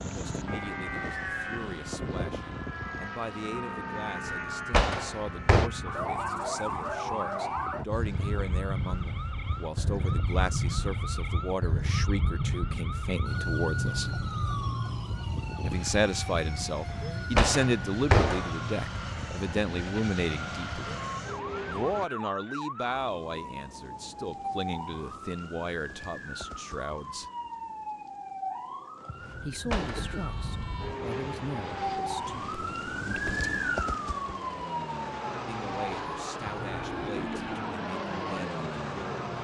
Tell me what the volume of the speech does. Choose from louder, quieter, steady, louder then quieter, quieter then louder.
louder then quieter.